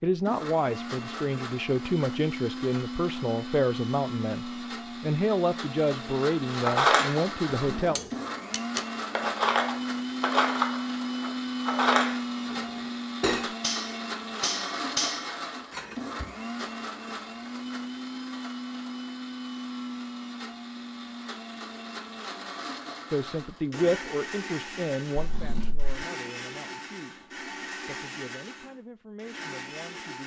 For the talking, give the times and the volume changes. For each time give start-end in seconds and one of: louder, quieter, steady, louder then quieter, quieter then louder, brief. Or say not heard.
0.0-8.0 steady
23.1-30.2 quieter.